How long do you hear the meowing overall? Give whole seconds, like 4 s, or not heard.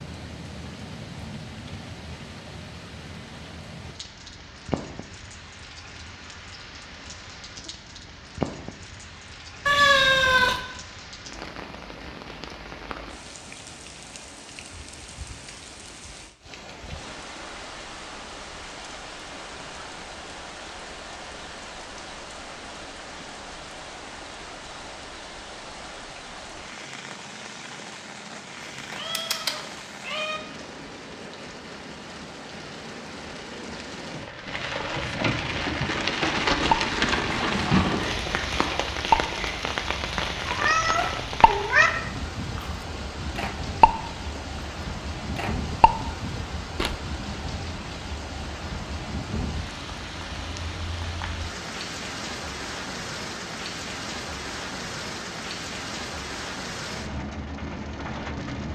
4 s.